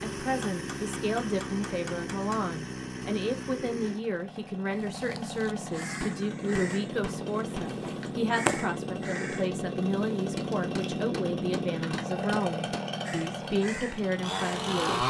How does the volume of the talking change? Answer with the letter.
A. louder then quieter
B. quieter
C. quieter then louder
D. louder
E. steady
E.